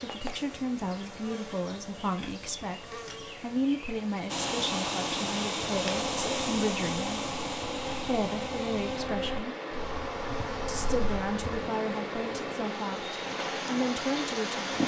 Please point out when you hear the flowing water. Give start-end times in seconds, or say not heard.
4.2-14.8.